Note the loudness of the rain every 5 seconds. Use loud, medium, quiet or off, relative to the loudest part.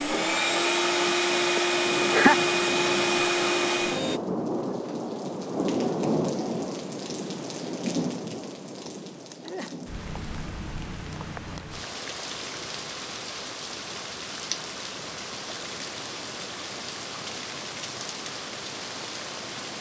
loud, loud, medium, medium.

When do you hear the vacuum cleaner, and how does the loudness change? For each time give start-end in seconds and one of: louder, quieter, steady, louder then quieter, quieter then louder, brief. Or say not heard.
0.0-4.2 steady.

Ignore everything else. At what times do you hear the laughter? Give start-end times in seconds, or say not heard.
1.6-2.4.